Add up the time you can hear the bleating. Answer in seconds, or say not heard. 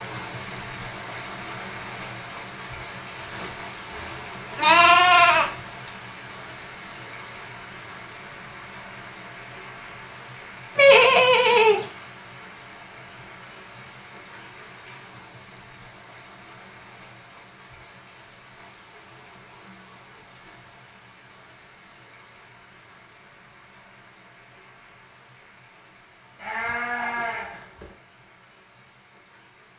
5 s.